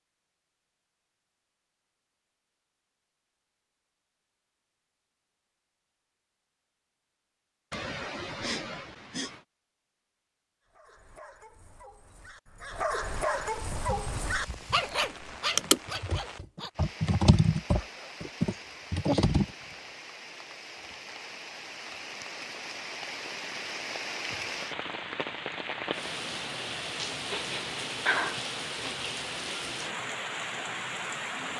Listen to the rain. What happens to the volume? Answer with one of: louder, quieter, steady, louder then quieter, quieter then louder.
louder.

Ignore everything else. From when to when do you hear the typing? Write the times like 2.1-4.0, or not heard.
13.8-19.4.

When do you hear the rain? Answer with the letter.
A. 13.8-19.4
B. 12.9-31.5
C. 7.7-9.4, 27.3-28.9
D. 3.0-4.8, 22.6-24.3
B.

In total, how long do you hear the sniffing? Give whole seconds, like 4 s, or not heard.
3 s.